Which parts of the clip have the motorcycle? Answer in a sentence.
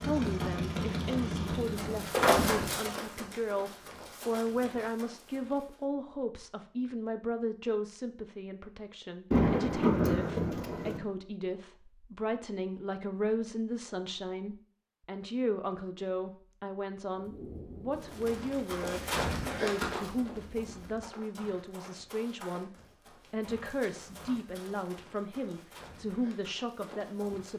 You can hear the motorcycle from 0.0 to 2.3 s.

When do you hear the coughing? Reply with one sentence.
The coughing can't be heard in this clip.